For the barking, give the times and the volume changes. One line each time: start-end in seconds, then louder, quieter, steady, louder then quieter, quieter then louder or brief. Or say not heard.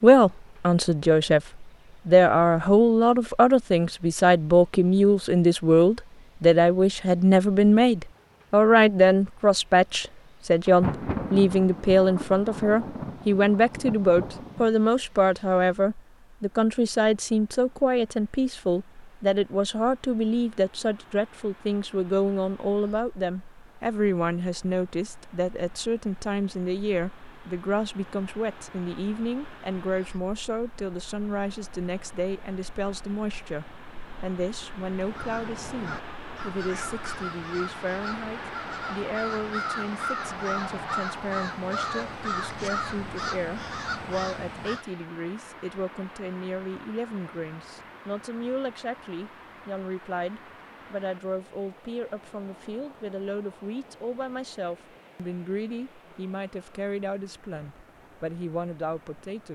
not heard.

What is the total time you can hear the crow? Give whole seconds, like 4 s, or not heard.
10 s.